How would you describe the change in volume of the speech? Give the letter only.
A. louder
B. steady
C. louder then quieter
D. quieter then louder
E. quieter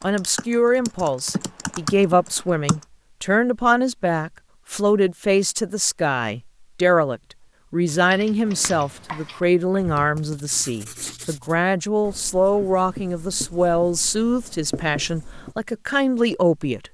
B.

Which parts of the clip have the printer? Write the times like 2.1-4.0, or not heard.
not heard.